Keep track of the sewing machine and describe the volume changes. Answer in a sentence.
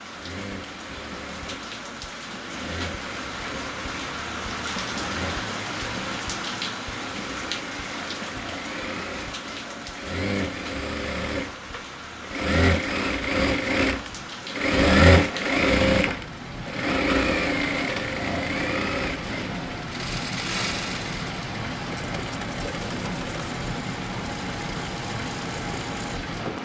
The volume of the sewing machine goes up, then down.